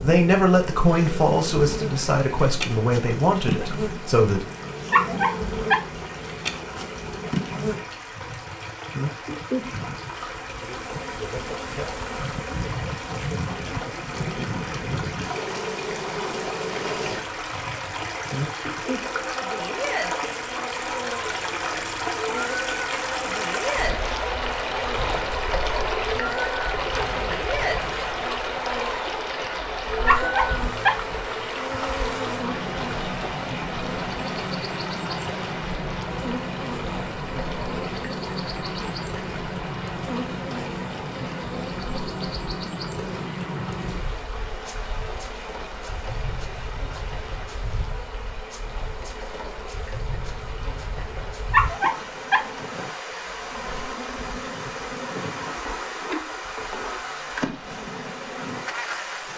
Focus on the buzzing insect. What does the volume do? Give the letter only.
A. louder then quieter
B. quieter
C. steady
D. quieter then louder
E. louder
C.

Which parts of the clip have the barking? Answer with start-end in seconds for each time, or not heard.
4.9-5.8, 30.1-31.0, 51.5-52.5.